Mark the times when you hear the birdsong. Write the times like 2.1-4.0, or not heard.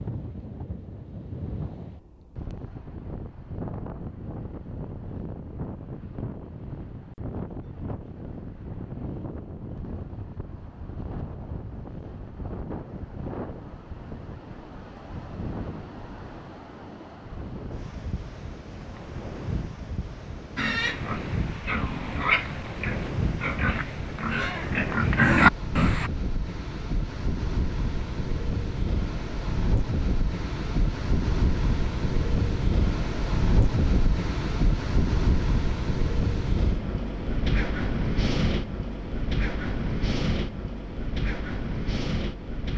not heard.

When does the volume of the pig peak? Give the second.
25 s.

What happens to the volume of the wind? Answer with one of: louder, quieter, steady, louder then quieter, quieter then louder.
louder.